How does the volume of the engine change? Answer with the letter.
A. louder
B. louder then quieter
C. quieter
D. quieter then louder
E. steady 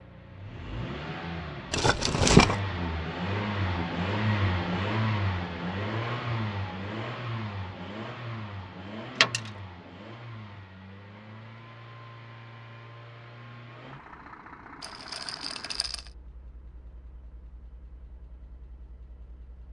C.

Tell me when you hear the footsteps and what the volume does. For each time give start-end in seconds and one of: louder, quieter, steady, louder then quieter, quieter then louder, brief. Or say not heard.
not heard.